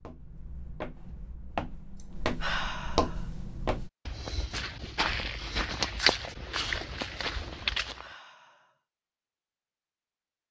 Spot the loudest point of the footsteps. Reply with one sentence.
The loudest moment of the footsteps is at 6 seconds.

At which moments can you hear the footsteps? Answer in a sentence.
The footsteps can be heard from 0.0 to 8.1 s.